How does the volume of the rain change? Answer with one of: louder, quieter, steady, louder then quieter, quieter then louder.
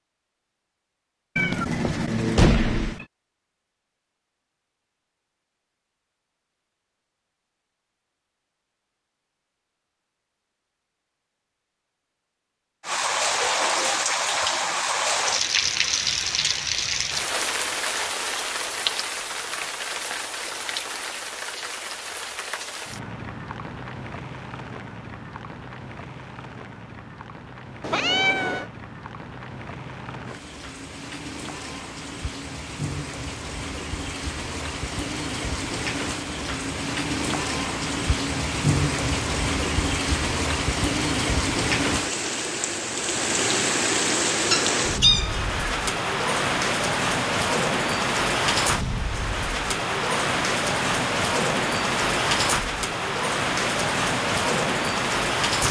quieter then louder.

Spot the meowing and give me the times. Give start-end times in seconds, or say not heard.
1.4-3.0, 27.8-28.7, 44.5-45.6.